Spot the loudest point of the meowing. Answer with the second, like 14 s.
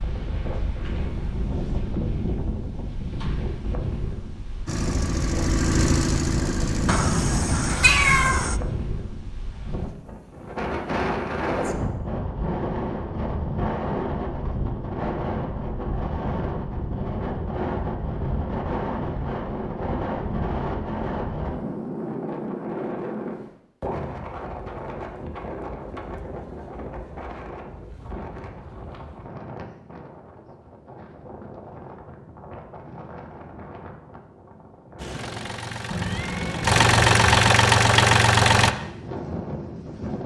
8 s.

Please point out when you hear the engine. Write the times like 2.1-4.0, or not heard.
4.7-7.8, 35.0-38.7.